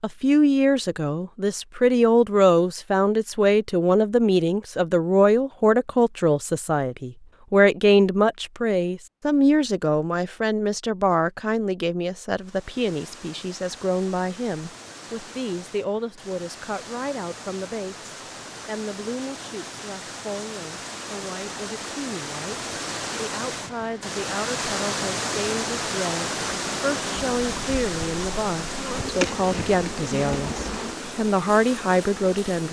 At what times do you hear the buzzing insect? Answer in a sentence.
The buzzing insect can be heard from 26.4 to 32.6 s.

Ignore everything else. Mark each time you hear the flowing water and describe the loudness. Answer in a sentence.
You can hear the flowing water from 12.3 to 32.6 s, getting louder then quieter.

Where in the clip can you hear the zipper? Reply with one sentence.
The zipper can't be heard in this clip.